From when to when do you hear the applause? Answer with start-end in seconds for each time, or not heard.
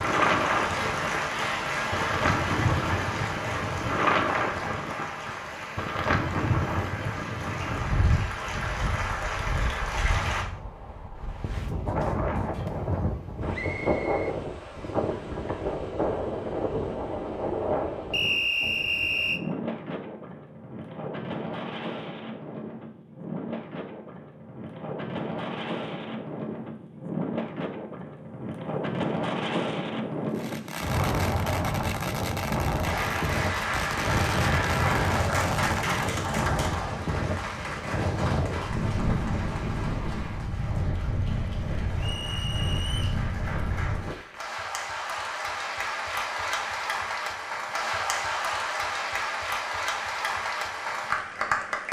0.0-10.4, 32.8-51.8.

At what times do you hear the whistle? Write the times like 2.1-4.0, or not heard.
13.5-14.8, 18.1-19.4, 42.0-43.2.